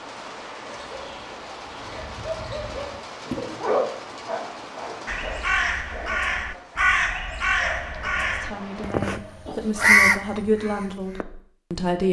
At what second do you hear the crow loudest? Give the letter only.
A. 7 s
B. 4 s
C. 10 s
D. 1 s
C.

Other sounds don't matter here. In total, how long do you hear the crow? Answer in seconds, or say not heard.
6 s.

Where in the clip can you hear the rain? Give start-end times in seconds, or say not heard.
0.0-8.9.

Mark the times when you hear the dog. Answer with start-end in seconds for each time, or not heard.
0.6-10.1.